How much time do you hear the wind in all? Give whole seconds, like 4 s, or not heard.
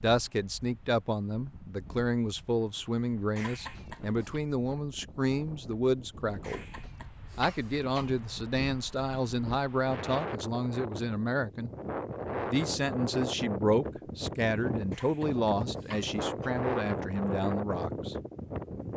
19 s.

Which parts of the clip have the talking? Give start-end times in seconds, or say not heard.
0.0-6.6, 7.3-11.7, 12.4-18.1.